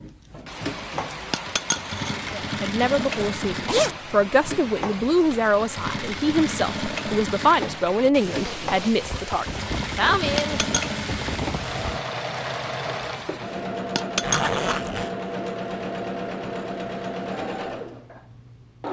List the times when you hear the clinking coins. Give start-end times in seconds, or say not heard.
1.3-2.1, 10.3-10.9, 13.9-14.8.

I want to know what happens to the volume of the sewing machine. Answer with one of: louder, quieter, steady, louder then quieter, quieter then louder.
steady.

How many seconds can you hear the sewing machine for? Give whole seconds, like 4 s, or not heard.
19 s.